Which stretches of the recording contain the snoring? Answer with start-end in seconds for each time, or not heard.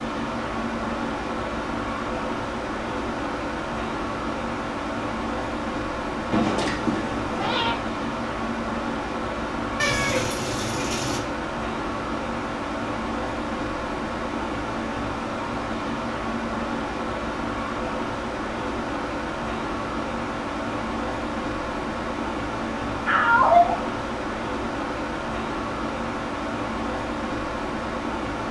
not heard.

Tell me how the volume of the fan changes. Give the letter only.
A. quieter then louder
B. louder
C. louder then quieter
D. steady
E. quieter
D.